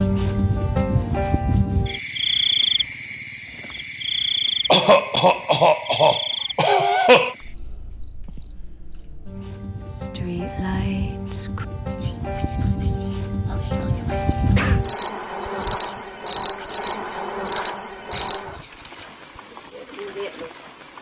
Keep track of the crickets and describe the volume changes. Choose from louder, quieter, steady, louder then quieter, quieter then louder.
quieter then louder.